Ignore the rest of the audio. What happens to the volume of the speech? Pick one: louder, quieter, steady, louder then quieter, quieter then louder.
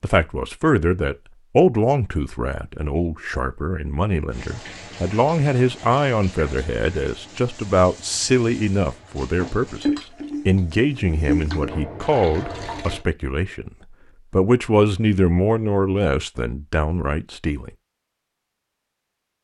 steady.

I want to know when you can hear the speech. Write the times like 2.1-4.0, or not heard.
0.0-13.7, 14.3-17.7.